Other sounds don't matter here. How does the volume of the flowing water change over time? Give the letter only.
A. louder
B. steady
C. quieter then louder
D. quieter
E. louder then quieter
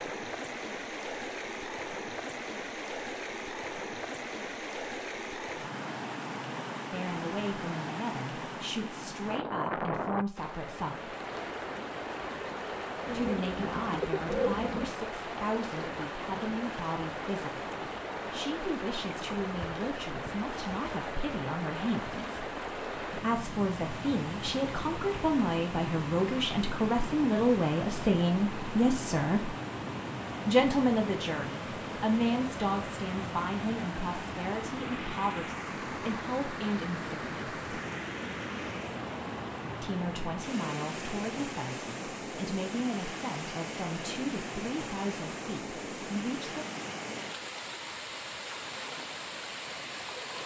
B.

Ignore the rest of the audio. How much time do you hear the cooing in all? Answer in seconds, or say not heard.
2 s.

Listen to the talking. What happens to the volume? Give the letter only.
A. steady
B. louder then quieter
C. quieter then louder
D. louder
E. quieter
B.